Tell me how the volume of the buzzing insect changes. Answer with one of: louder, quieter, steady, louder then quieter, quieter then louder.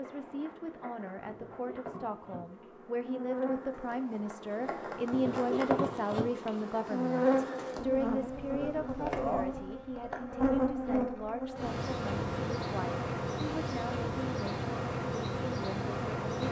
louder.